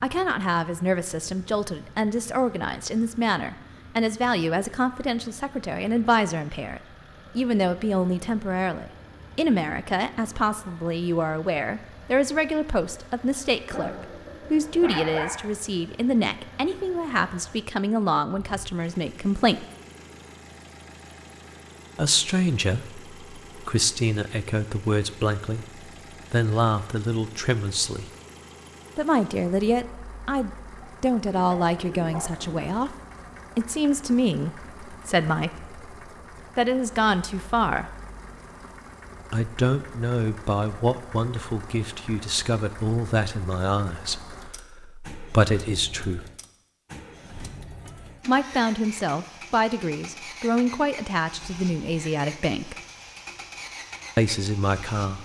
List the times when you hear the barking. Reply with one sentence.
The barking can be heard from 13.7 to 15.3 s and from 30.8 to 32.6 s.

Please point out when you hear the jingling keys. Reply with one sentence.
You can't hear the jingling keys here.